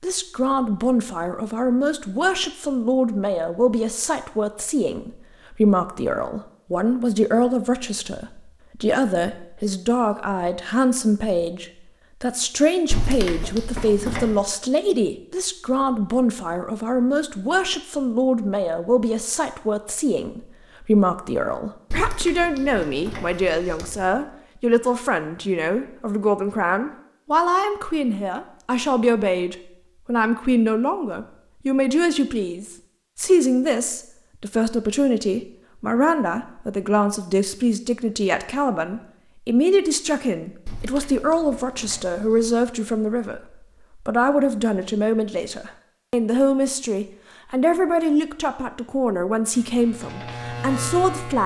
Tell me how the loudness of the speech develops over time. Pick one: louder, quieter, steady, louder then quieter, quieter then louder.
steady.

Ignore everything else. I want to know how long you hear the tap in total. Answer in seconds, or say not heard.
not heard.